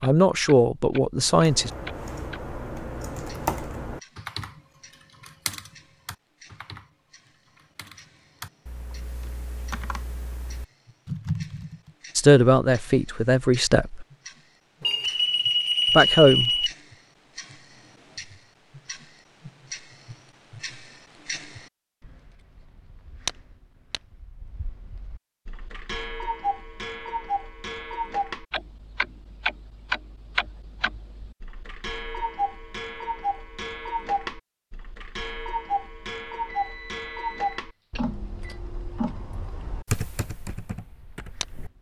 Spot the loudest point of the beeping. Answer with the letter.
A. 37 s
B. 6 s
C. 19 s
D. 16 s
D.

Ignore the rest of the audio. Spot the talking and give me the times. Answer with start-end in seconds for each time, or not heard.
0.0-1.7, 12.2-14.1, 15.9-16.6.